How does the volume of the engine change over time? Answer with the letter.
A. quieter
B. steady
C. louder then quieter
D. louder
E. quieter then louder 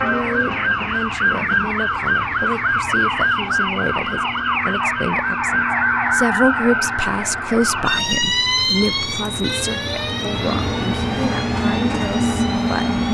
D.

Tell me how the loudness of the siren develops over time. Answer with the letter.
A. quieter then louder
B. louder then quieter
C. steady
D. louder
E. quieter
E.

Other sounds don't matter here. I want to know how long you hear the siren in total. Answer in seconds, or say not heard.
13 s.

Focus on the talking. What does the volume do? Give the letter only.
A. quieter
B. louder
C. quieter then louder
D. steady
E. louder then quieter
E.